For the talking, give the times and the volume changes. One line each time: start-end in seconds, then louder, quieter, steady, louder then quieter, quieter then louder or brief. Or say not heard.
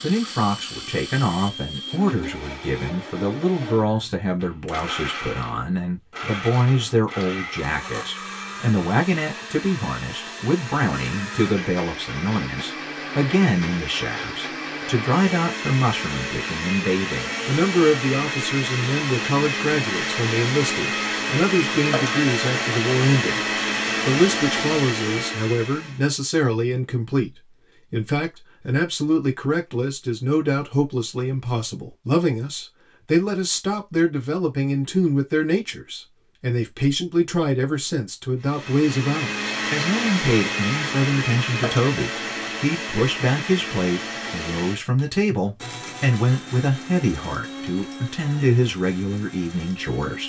0.0-50.2 steady.